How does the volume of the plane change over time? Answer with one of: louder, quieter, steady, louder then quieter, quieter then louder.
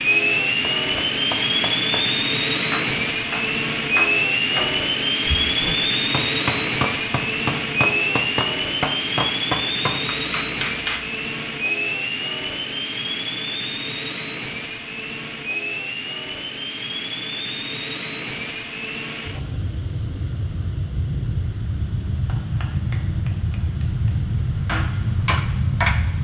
quieter.